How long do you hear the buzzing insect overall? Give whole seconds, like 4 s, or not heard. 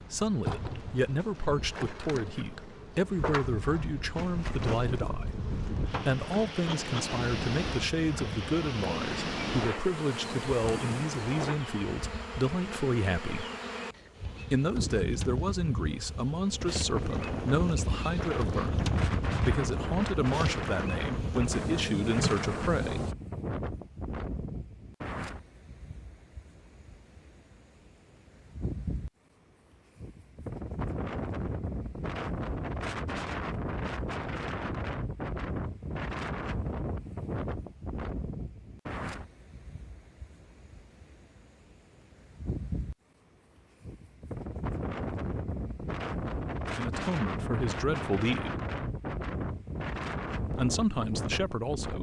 23 s.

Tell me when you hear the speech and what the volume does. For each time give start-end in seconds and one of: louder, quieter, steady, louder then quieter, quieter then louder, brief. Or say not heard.
0.1-13.4 steady
14.5-23.1 steady
46.8-48.5 brief
50.5-51.9 brief.